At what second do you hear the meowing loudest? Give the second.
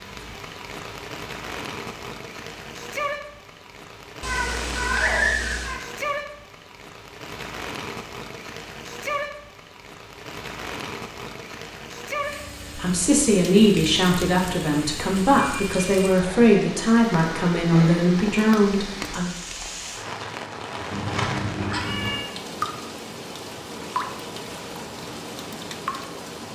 5 s.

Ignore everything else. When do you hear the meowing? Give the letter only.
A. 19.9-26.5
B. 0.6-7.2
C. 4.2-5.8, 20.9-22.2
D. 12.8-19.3
C.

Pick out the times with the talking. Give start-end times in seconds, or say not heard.
12.8-19.3.